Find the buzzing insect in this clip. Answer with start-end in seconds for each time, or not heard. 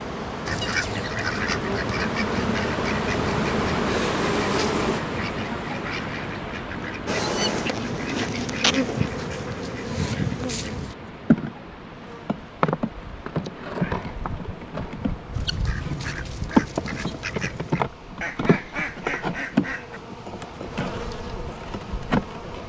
0.0-5.0, 7.0-22.6.